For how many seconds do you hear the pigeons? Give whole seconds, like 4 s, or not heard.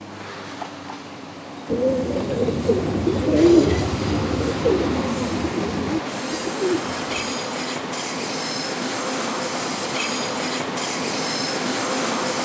6 s.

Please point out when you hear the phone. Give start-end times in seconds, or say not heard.
not heard.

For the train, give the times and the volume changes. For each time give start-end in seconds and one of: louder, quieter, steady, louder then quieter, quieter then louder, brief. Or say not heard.
0.0-12.4 louder.